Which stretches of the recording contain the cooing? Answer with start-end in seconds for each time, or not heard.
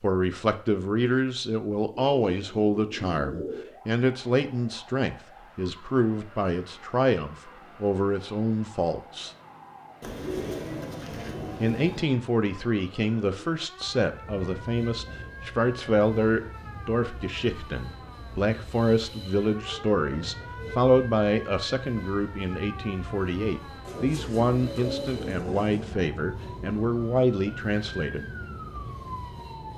2.1-3.7, 10.0-12.1, 19.1-20.8, 23.9-25.9.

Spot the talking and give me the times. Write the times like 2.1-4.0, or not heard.
0.0-9.3, 11.6-28.3.